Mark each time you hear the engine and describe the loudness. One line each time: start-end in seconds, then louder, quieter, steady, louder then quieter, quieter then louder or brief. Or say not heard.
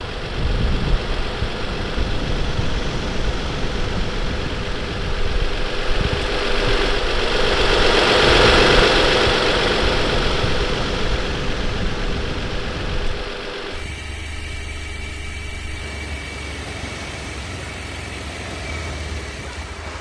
0.0-19.9 louder then quieter.